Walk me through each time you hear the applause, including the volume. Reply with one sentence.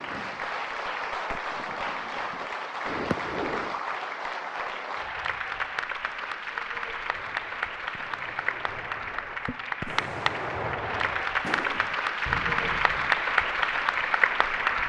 You can hear the applause from 0.0 to 14.8 s, getting louder.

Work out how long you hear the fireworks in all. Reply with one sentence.
The fireworks can be heard for 10 seconds in total.